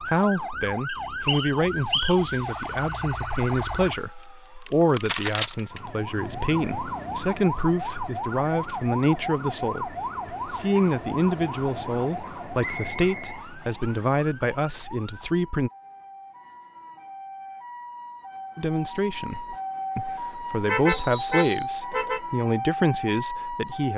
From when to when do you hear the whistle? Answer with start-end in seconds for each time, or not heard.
0.8-2.1, 12.6-14.1, 20.9-21.8.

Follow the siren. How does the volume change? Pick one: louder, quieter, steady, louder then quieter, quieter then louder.
quieter then louder.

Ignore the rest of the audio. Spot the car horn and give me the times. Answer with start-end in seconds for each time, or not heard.
20.6-22.2.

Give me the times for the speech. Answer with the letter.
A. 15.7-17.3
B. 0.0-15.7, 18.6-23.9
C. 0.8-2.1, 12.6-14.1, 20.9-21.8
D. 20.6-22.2
B.